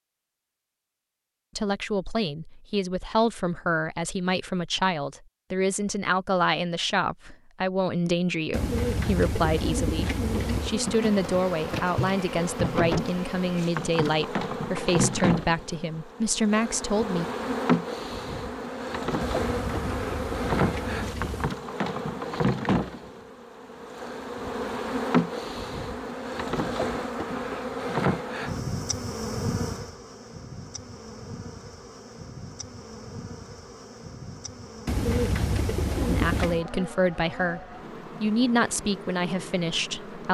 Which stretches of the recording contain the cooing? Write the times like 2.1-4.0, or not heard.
8.5-10.8, 19.2-21.6, 34.9-36.6.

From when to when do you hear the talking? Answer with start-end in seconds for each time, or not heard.
1.6-17.2, 36.0-40.2.